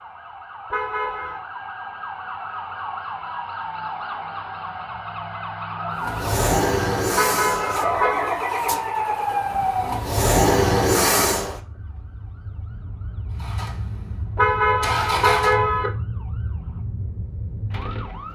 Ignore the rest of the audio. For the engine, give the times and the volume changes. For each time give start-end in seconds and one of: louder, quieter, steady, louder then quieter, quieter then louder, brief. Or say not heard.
6.0-11.6 quieter then louder
13.3-15.6 brief.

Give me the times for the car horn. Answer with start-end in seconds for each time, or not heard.
0.7-1.4, 7.2-8.3, 14.3-15.9.